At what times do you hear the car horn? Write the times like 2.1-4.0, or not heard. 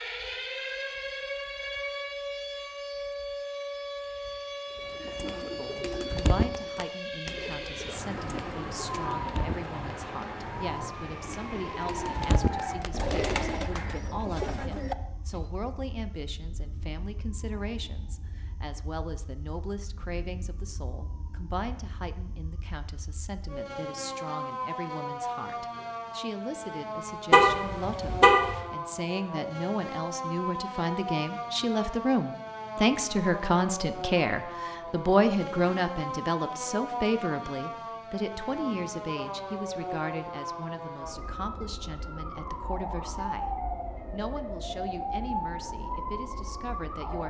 27.3-28.6.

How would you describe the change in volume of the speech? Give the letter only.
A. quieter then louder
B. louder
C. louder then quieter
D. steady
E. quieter
C.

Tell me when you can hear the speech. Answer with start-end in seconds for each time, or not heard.
5.5-43.5, 44.1-47.2.